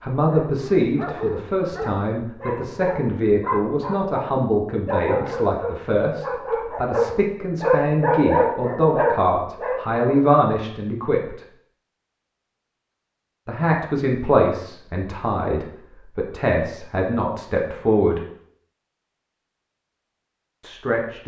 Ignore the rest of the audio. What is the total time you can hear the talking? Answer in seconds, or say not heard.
17 s.